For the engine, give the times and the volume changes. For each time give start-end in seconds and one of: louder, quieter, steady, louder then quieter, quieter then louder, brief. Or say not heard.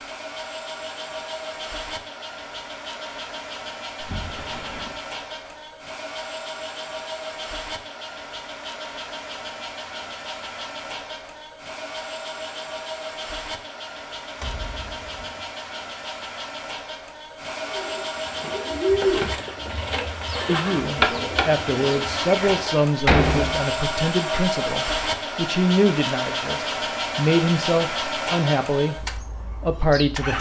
0.0-30.3 louder.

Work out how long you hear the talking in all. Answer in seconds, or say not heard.
10 s.